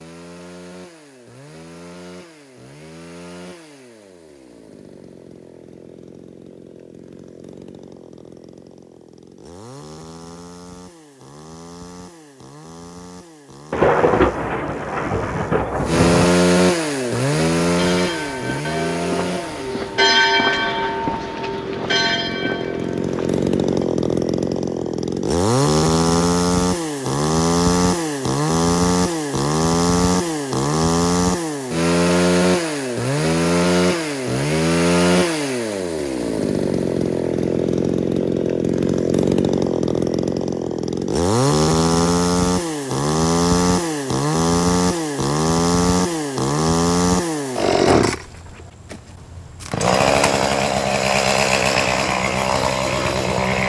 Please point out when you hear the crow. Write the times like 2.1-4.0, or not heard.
not heard.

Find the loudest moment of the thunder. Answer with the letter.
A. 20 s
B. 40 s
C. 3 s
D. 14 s
D.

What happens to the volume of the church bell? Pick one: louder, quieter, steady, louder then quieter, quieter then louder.
louder then quieter.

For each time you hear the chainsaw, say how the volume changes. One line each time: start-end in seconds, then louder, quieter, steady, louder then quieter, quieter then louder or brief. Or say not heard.
0.0-53.6 louder.